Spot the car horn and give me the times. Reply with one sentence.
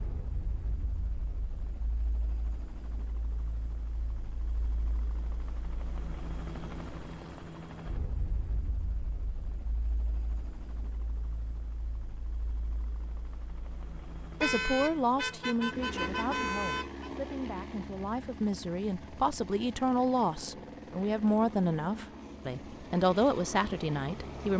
You can hear the car horn from 14.4 to 17.1 s.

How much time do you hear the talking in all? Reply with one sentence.
You can hear the talking for 10 seconds altogether.